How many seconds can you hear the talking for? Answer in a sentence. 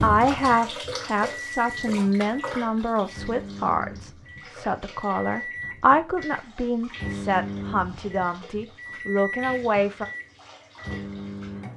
You can hear the talking for 10 seconds altogether.